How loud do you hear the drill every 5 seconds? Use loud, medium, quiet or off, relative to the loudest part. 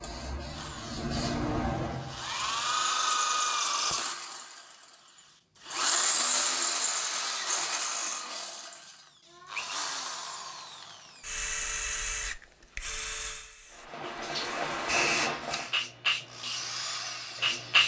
loud, loud, medium, medium.